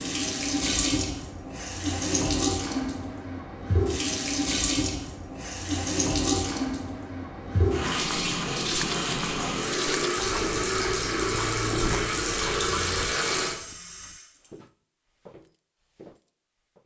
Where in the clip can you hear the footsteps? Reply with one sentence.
You can hear the footsteps from 7.9 to 16.8 s.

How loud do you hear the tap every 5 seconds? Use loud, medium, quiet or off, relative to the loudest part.
loud, loud, loud, off.